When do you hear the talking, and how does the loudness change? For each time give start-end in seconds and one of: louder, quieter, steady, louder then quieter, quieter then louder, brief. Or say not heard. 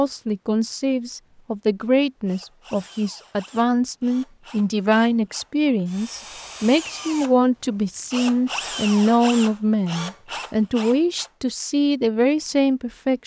0.0-13.2 steady.